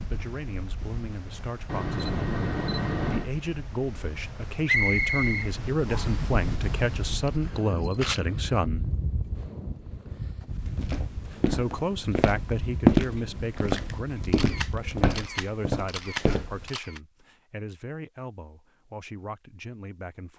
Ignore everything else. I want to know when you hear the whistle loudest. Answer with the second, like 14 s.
5 s.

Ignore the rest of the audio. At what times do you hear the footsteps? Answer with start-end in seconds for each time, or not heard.
10.8-16.7.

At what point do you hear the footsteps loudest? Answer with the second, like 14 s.
13 s.